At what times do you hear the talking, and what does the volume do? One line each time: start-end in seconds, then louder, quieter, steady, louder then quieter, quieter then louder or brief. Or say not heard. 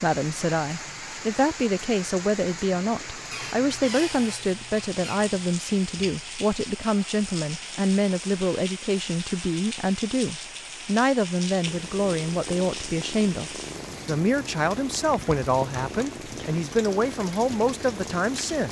0.0-18.6 steady.